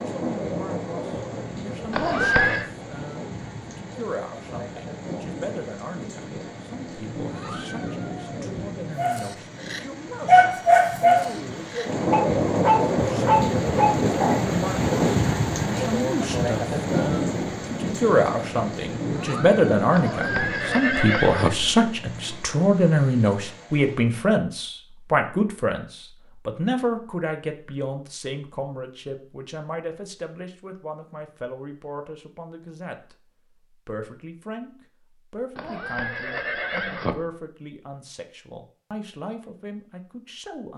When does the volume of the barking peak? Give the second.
10 s.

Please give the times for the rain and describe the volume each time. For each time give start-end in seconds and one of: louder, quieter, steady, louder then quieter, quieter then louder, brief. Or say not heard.
0.0-24.1 louder then quieter.